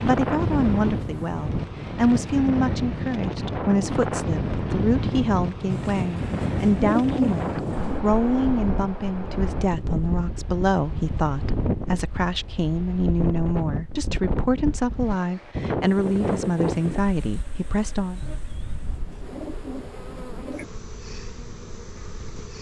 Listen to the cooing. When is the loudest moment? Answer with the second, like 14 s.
7 s.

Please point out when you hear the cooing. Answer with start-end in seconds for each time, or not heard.
5.7-8.0, 18.2-20.7.